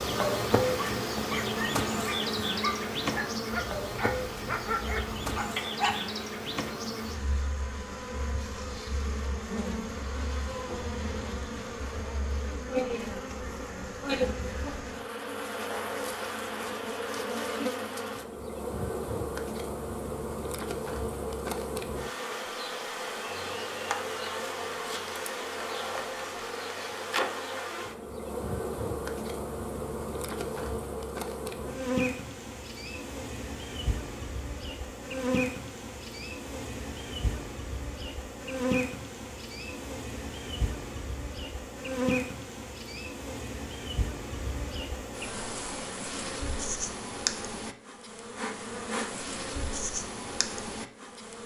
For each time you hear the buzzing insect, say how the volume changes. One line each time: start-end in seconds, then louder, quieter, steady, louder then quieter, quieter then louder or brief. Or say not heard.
0.0-51.4 steady.